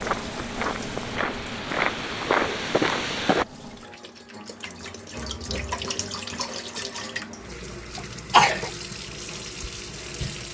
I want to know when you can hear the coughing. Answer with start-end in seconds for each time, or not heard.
8.0-8.7.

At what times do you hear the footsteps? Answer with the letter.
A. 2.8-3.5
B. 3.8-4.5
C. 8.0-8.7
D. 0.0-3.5
D.